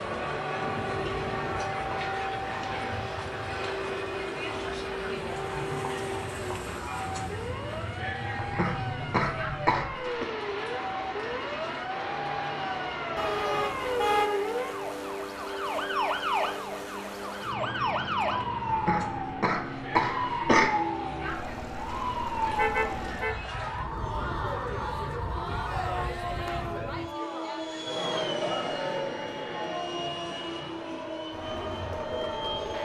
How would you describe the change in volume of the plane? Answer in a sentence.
The loudness of the plane stays about the same.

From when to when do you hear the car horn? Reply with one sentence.
The car horn can be heard from 13.2 to 14.3 s and from 22.5 to 23.4 s.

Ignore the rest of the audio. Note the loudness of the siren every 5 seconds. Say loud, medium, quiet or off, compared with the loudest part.
medium, medium, loud, loud, loud, medium, medium.